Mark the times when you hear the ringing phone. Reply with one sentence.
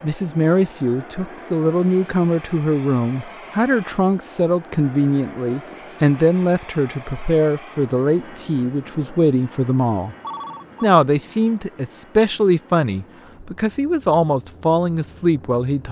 The ringing phone can be heard from 10.2 to 10.9 s.